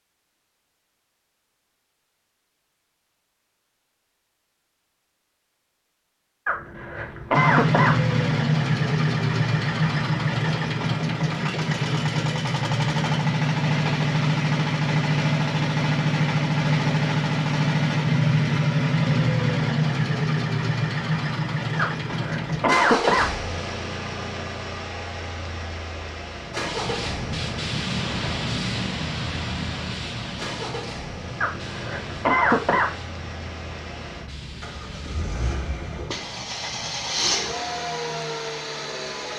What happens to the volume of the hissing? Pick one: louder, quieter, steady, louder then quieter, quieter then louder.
quieter.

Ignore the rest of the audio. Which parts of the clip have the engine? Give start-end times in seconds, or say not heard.
7.3-39.3.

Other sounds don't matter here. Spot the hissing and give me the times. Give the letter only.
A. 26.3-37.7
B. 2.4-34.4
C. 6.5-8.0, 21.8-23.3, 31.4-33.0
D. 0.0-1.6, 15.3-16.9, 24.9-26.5
A.